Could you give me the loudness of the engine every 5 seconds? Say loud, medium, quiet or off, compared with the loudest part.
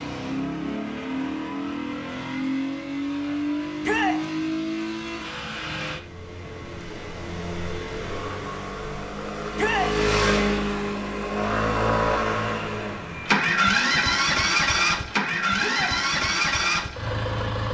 medium, medium, loud, loud.